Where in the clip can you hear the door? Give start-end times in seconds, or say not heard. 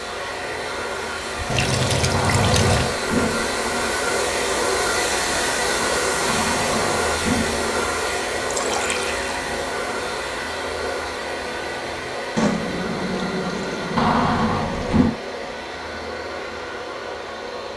2.1-3.9, 6.2-7.8, 13.9-15.2.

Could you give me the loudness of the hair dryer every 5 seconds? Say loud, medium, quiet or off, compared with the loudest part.
loud, loud, medium, medium.